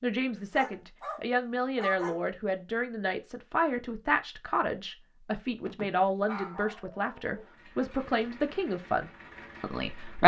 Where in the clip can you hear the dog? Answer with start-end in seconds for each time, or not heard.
0.5-2.2, 5.5-7.5.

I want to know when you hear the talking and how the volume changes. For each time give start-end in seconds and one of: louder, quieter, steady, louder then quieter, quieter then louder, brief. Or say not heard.
0.0-10.2 steady.